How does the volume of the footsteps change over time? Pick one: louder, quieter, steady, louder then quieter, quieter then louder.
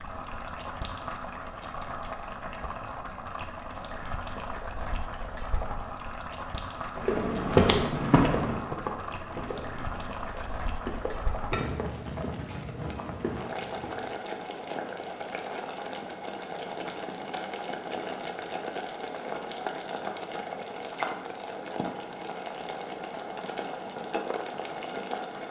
quieter.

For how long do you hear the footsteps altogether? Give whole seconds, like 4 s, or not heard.
7 s.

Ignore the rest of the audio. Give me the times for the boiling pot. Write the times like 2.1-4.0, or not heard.
0.0-25.4.